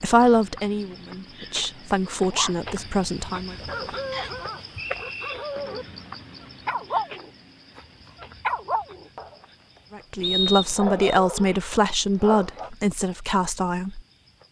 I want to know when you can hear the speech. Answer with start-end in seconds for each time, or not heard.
0.0-3.5, 9.9-14.0.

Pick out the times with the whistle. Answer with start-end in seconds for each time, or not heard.
4.1-5.3, 10.2-11.2.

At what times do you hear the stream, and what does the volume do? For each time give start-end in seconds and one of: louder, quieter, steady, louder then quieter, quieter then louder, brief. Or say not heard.
not heard.